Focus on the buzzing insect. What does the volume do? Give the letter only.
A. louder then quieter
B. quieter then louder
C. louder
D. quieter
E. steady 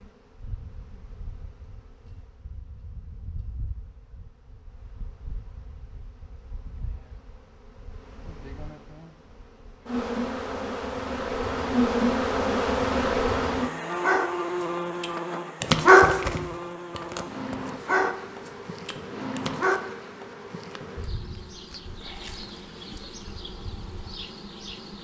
A.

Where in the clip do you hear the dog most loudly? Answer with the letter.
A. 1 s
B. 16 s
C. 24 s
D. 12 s
B.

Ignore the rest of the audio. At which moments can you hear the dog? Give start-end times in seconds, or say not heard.
14.0-19.8.